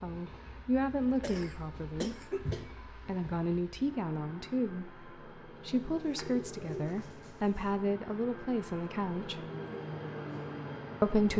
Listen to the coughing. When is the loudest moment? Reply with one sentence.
The volume of the coughing peaks at 2 seconds.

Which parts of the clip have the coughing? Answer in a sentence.
You can hear the coughing from 0.8 to 2.8 s.